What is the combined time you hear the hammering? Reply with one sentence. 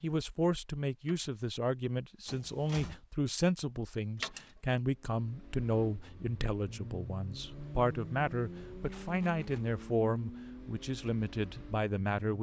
You can't hear the hammering here.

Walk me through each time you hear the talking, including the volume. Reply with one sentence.
You can hear the talking from 0.0 to 12.3 s, at a steady volume.